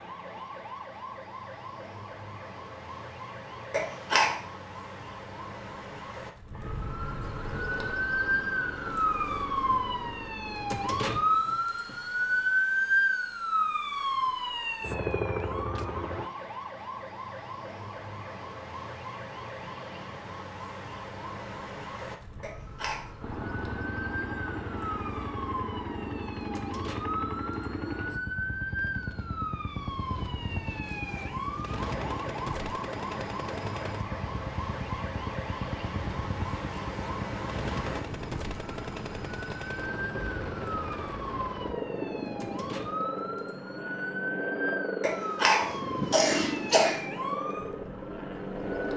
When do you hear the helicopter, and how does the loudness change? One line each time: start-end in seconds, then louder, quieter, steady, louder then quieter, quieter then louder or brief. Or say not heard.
7.5-16.3 quieter then louder
23.2-48.9 steady.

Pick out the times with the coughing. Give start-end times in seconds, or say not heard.
3.7-4.3, 22.4-23.1, 45.0-47.0.